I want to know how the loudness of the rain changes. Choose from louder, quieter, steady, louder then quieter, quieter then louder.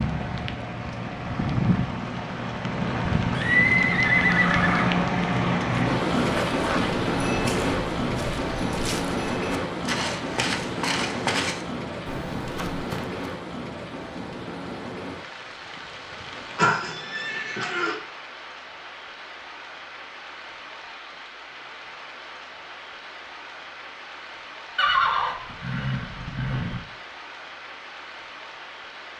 quieter.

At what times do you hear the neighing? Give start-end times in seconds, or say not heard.
3.3-4.8, 16.6-17.9, 24.8-26.8.